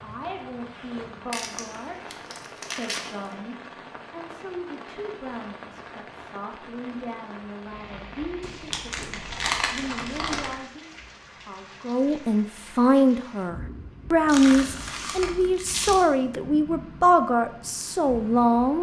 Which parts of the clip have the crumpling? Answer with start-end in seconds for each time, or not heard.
1.3-3.3, 8.4-10.7, 14.2-16.1.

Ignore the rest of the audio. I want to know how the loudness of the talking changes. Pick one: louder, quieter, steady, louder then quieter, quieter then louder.
louder.